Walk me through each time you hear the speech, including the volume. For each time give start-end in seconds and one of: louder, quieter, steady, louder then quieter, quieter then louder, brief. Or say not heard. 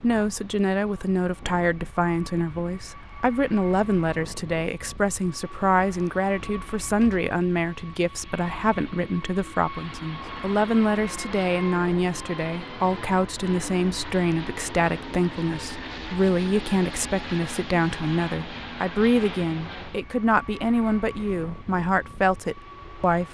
0.0-23.3 steady.